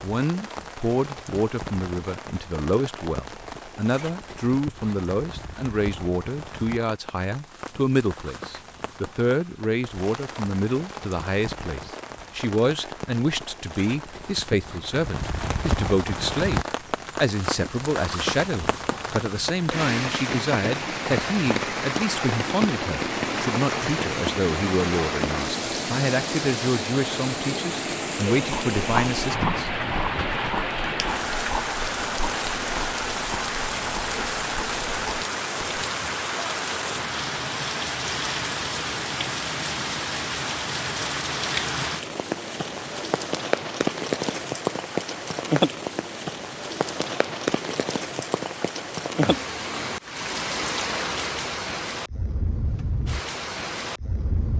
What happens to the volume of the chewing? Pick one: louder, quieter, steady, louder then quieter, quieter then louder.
quieter.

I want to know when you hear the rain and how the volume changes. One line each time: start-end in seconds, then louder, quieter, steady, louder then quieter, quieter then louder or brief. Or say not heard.
0.0-54.5 louder.